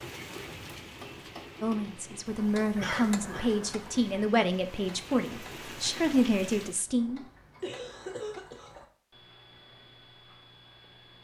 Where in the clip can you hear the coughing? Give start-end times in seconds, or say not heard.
2.8-3.5, 7.6-8.8.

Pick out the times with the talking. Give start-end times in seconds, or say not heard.
1.6-7.2.